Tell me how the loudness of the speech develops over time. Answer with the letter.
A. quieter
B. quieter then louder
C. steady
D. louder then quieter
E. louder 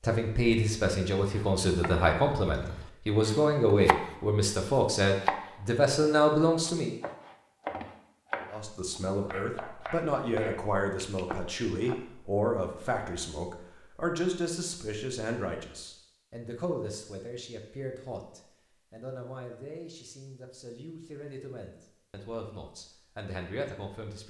A.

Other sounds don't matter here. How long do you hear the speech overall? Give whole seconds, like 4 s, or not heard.
23 s.